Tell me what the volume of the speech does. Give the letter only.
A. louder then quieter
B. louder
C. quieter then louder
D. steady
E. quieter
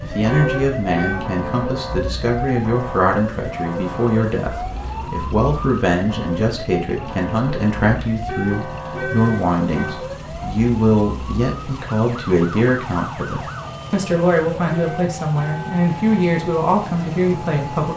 D.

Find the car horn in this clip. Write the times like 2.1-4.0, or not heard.
0.3-1.2, 8.2-10.0, 14.7-15.8.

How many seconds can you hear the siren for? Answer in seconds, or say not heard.
18 s.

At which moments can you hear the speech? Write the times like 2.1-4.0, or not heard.
0.0-17.9.